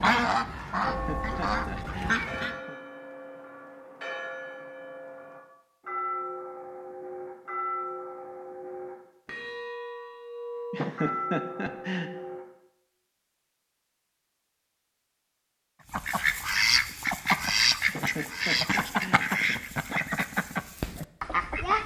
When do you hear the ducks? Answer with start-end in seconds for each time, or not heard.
0.0-2.5, 15.9-21.8.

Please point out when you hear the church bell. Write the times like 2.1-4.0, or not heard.
0.8-12.4.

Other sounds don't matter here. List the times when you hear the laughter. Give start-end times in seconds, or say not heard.
0.8-2.8, 10.7-12.1, 17.9-19.6.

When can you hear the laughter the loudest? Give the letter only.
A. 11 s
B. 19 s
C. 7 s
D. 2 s
A.